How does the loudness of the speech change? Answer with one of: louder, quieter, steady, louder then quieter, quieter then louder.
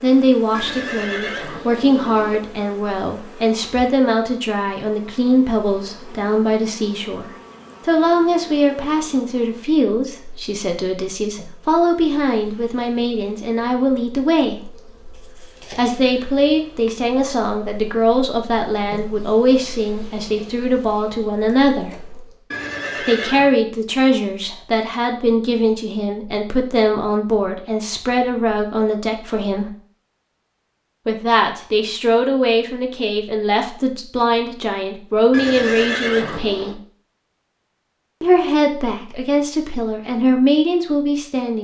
steady.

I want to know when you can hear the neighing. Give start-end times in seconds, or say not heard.
0.5-2.4, 22.5-23.6, 35.3-36.8.